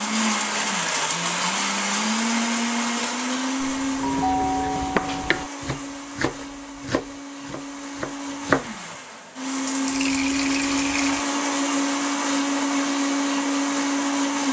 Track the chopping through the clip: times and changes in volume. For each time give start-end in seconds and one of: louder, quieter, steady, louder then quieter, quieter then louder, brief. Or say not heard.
4.0-8.8 quieter.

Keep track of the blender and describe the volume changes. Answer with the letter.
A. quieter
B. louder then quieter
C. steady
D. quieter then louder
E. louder
D.